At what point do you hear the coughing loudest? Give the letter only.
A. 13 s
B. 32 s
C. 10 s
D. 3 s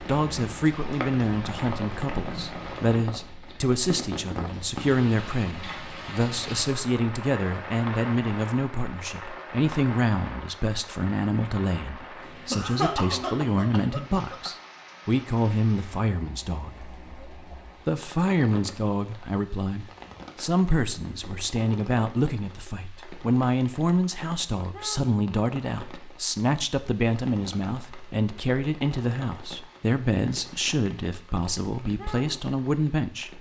A.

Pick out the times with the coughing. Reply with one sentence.
The coughing can be heard from 12.5 to 14.5 s.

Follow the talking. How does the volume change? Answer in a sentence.
The volume of the talking stays about the same.